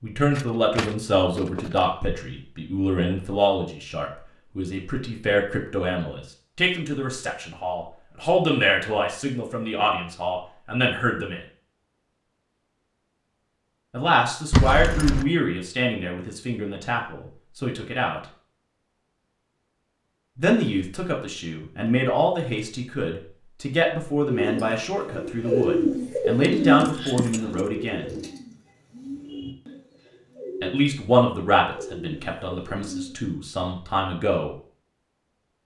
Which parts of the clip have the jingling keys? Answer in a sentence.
The jingling keys can be heard from 0.3 to 1.9 s, from 14.5 to 15.2 s and from 26.6 to 28.2 s.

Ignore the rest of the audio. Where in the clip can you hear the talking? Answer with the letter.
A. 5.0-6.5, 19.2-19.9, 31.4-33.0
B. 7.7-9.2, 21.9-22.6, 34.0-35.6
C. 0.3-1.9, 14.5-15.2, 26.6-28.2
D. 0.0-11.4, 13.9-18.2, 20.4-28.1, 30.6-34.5
D.